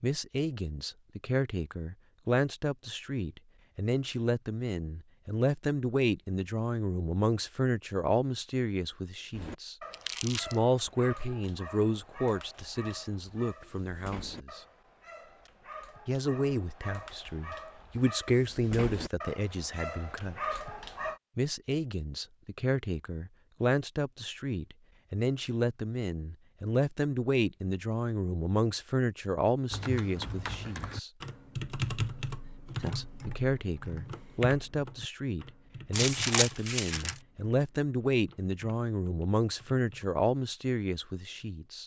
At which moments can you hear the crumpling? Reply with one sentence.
The crumpling can be heard from 9.9 to 10.6 s and from 35.9 to 37.1 s.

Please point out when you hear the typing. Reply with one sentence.
The typing can be heard from 29.7 to 40.1 s.